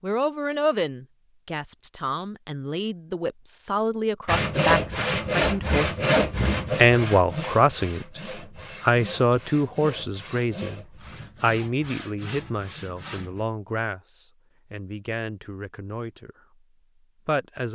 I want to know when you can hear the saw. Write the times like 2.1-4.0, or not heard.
4.2-13.4.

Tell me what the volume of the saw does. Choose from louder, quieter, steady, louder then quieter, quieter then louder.
quieter.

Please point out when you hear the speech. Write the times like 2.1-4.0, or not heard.
0.0-8.2, 8.8-16.4, 17.2-17.7.